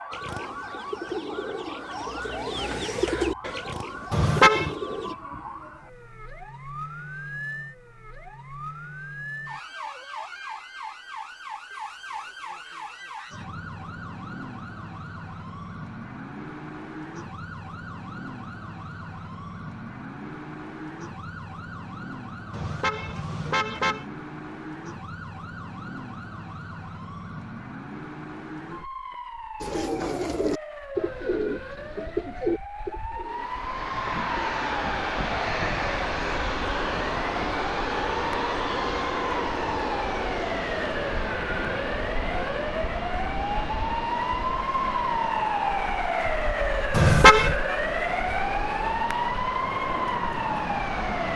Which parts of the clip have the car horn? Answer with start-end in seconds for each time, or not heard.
4.1-4.8, 22.5-24.1, 46.9-47.5.